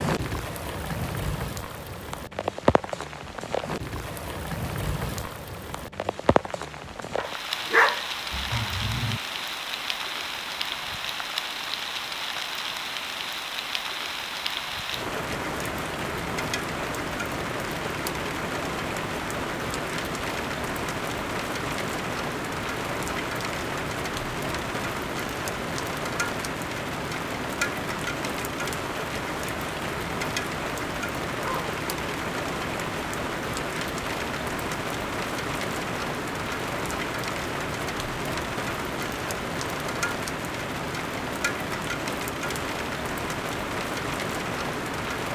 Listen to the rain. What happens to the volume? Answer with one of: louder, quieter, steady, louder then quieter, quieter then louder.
steady.